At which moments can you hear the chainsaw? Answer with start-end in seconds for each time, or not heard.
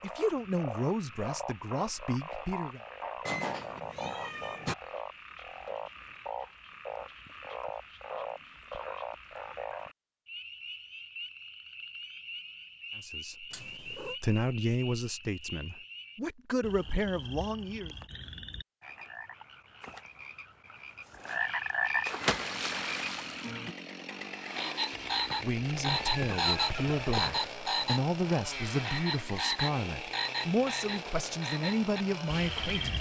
22.0-32.9.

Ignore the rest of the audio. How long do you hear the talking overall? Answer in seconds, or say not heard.
15 s.